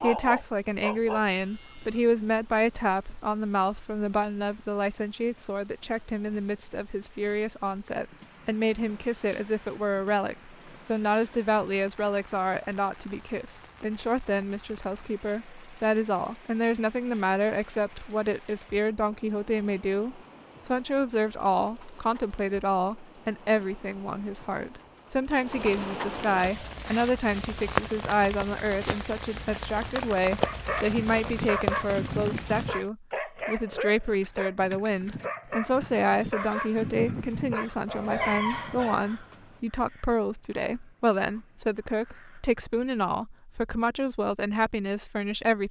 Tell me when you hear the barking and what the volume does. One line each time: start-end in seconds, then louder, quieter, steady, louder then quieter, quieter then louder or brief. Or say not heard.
0.0-1.9 brief
30.3-39.1 quieter then louder.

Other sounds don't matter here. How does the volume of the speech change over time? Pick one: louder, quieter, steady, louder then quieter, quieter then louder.
steady.